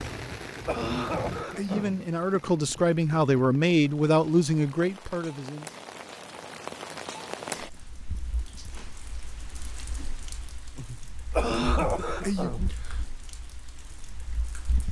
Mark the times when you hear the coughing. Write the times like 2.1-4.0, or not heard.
0.1-2.0, 10.8-12.7.